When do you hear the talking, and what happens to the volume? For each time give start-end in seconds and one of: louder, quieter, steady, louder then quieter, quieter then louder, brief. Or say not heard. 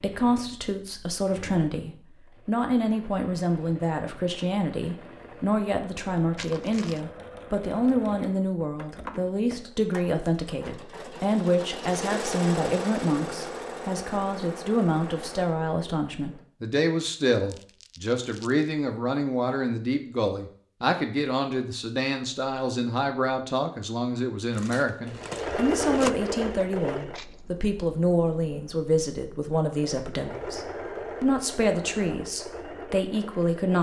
0.0-33.7 steady.